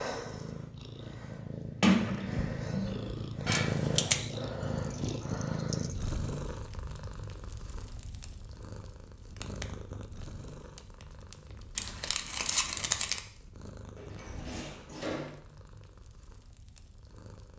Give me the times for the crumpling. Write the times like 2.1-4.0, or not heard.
3.5-4.2, 11.8-13.2.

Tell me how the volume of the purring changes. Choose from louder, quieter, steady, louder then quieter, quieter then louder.
quieter.